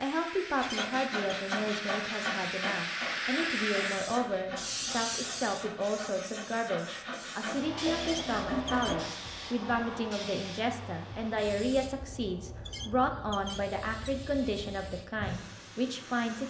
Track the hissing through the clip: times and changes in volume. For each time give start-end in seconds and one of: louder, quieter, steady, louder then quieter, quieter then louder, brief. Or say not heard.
0.0-16.4 quieter.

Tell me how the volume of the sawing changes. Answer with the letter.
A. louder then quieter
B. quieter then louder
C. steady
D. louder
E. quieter
B.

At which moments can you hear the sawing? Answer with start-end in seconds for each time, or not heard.
0.6-9.0.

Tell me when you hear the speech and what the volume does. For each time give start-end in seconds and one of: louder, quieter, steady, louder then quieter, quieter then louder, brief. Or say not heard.
0.0-16.4 steady.